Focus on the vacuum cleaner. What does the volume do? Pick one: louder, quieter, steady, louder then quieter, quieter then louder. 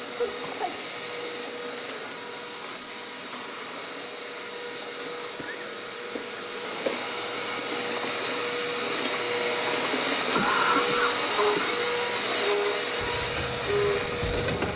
louder.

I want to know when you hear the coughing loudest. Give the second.
11 s.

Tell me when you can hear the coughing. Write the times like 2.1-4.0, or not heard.
0.2-0.8, 5.3-7.0, 10.3-11.8.